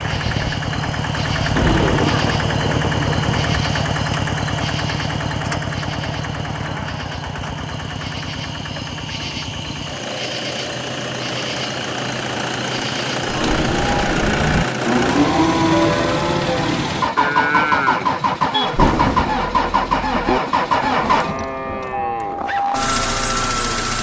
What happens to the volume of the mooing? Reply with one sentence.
The volume of the mooing goes down.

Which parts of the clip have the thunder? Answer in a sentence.
The thunder can be heard from 1.6 to 3.5 s and from 18.6 to 22.4 s.